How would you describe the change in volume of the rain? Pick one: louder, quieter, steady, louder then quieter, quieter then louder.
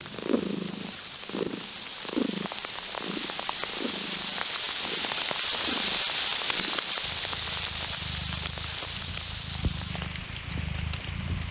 louder then quieter.